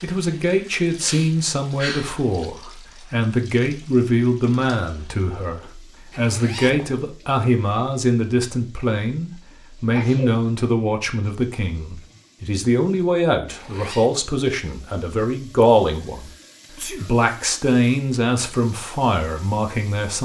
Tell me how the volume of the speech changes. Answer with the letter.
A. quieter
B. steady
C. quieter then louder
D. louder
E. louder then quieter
B.